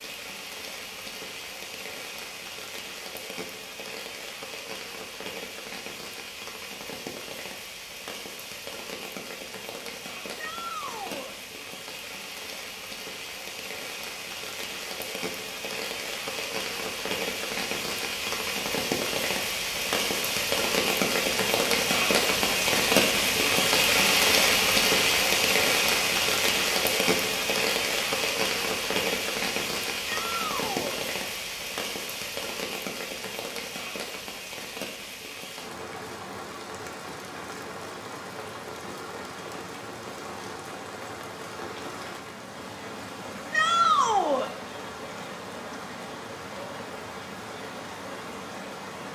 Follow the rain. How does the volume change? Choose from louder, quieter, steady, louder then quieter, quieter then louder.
louder then quieter.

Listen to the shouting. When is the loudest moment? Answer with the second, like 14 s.
44 s.